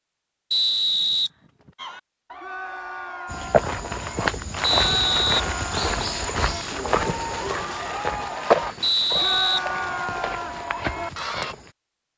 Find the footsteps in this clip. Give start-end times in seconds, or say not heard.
3.2-11.8.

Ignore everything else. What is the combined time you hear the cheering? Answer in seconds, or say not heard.
10 s.